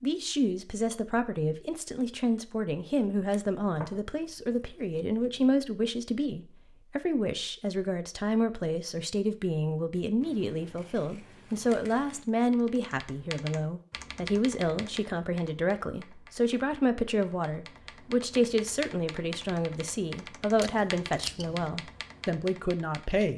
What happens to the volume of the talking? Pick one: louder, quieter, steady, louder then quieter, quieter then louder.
steady.